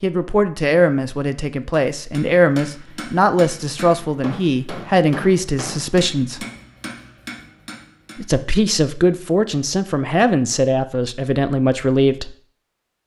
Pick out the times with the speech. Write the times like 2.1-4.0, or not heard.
0.0-6.5, 8.2-12.3.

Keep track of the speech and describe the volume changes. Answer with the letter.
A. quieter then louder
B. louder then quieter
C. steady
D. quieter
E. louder
C.